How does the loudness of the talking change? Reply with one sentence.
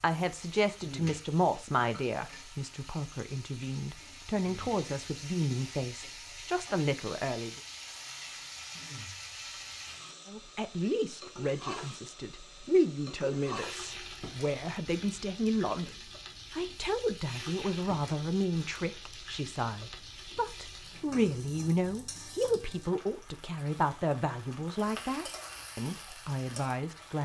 The volume of the talking stays about the same.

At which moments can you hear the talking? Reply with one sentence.
You can hear the talking from 0.0 to 7.6 s and from 10.2 to 27.1 s.